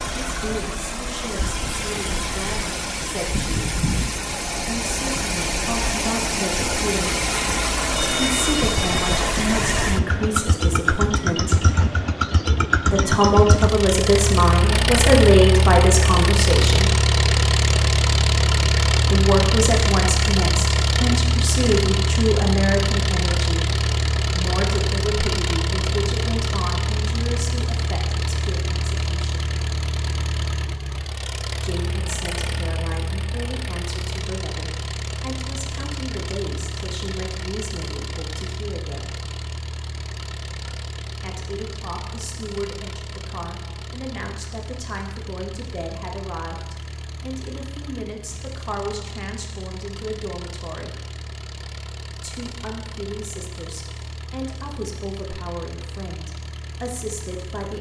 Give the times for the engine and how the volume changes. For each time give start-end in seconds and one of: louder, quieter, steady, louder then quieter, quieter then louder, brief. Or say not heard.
0.0-57.7 quieter.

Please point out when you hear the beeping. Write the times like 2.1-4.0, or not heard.
8.0-9.2.